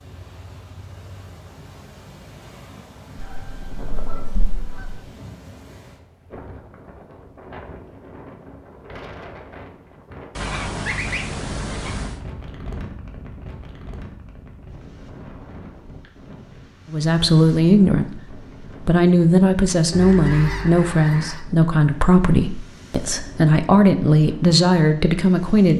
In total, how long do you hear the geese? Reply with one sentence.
You can hear the geese for 5 seconds altogether.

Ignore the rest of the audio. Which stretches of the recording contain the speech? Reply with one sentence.
The speech can be heard from 16.9 to 25.7 s.